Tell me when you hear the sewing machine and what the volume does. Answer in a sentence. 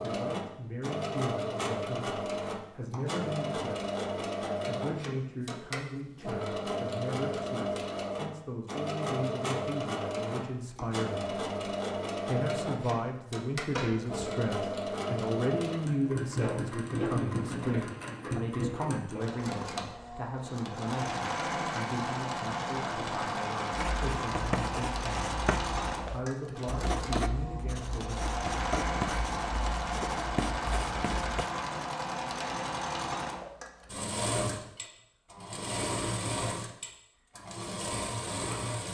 The sewing machine can be heard from 0.0 to 38.8 s, at a steady volume.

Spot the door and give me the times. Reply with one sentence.
You can hear the door from 13.7 to 14.3 s.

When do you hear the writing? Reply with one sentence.
You can hear the writing from 23.7 to 31.5 s.